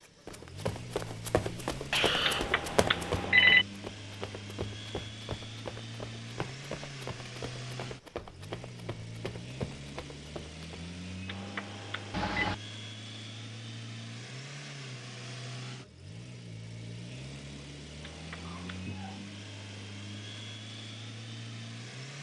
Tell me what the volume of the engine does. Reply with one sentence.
The volume of the engine stays about the same.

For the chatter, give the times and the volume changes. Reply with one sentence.
The chatter can't be heard in this clip.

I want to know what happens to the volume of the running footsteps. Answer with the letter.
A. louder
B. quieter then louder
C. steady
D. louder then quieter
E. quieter
E.